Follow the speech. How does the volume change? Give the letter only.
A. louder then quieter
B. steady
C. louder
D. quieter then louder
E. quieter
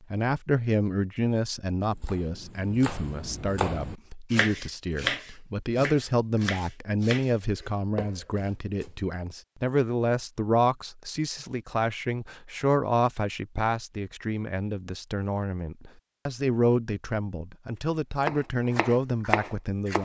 B.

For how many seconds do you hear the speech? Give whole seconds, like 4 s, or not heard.
20 s.